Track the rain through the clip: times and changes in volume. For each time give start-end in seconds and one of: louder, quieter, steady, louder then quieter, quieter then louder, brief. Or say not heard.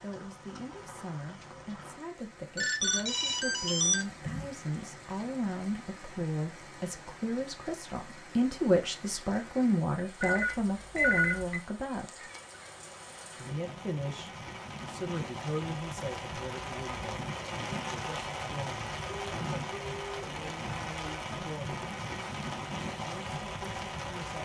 0.0-24.4 louder.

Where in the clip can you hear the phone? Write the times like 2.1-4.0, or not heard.
2.5-4.5, 10.2-11.6, 19.1-20.2.